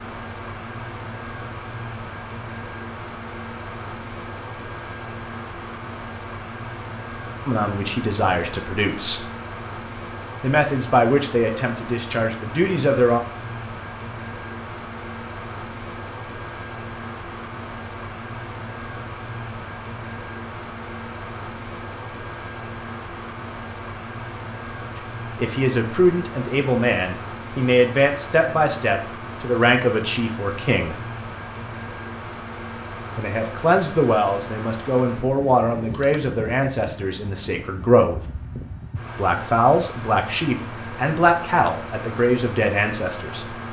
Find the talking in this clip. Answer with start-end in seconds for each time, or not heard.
7.5-9.3, 10.4-13.2, 25.4-30.9, 33.1-38.2, 39.1-43.5.